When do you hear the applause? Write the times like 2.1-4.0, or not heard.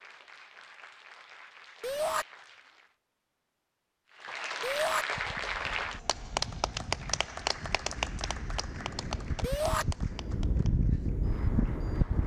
0.0-3.0, 4.0-12.2.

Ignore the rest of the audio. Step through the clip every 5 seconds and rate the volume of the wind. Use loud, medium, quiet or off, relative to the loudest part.
off, medium, loud.